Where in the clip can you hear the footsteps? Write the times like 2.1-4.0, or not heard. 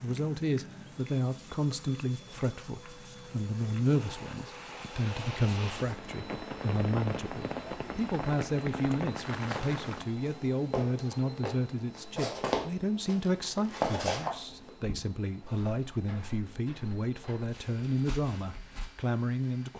9.4-18.9.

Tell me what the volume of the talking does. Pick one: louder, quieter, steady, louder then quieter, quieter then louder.
steady.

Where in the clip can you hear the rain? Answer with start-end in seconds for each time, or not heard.
0.0-10.1.